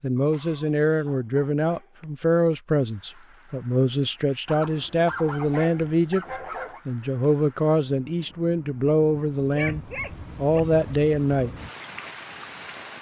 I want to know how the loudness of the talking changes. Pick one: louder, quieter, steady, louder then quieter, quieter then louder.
steady.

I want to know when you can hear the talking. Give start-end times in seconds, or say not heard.
0.0-6.2, 6.8-11.6.